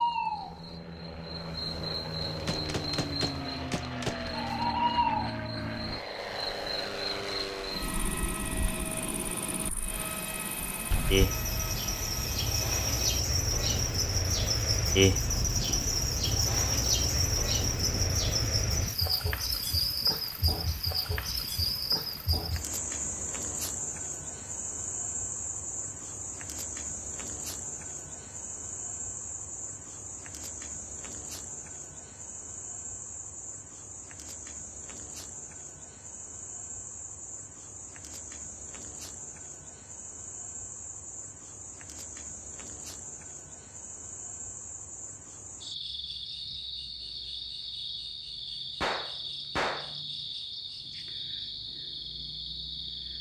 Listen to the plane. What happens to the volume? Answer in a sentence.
The loudness of the plane goes down.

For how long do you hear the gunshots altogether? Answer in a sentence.
You can hear the gunshots for 4 seconds altogether.